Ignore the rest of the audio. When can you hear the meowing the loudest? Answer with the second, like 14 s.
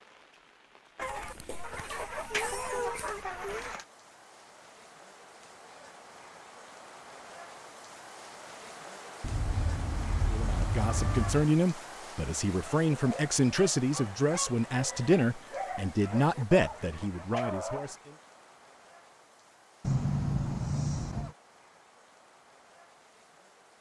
20 s.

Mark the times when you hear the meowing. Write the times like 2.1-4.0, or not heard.
1.0-3.7, 9.2-11.5, 19.8-21.4.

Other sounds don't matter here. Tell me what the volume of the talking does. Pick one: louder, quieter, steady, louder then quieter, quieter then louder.
steady.